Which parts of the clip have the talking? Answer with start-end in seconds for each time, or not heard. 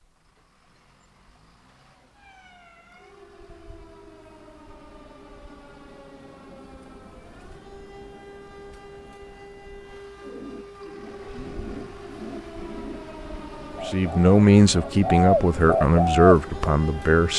13.8-17.3.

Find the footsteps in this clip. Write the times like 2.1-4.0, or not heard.
not heard.